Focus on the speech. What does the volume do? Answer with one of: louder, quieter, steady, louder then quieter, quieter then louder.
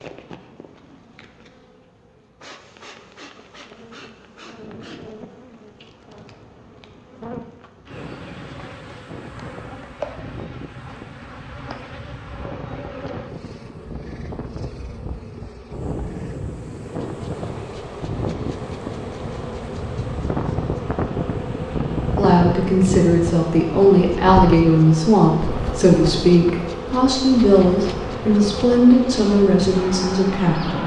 steady.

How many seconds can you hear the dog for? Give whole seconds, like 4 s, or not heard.
not heard.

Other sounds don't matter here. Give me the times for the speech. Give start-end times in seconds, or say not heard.
22.1-30.8.